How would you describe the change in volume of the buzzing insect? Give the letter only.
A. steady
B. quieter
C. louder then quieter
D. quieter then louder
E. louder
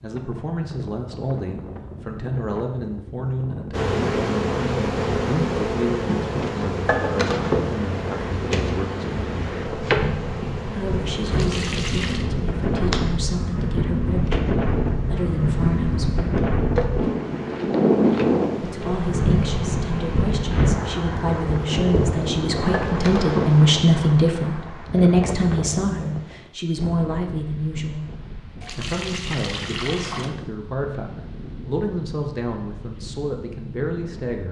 B.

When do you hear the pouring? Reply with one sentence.
You can hear the pouring from 11.3 to 12.3 s and from 28.6 to 30.4 s.